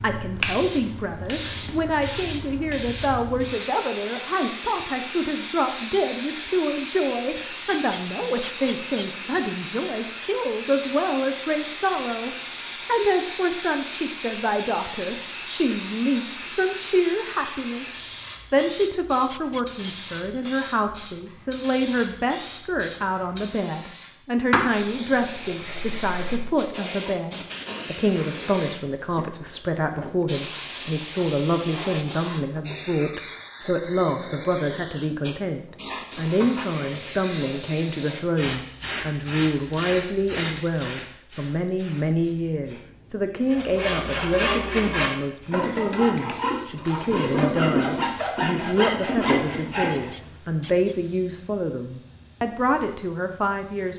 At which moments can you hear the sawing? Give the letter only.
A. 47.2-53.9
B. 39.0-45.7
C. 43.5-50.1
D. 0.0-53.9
C.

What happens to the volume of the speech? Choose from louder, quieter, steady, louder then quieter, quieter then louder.
steady.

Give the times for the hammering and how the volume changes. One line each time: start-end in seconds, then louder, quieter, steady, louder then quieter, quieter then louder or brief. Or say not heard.
not heard.